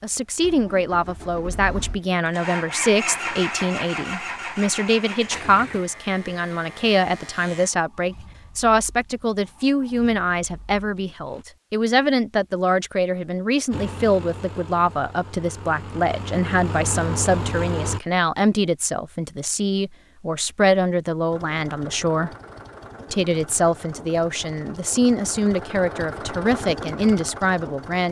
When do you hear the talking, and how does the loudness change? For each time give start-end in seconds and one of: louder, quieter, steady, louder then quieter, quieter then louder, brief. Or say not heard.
0.0-22.3 steady
23.1-28.0 steady.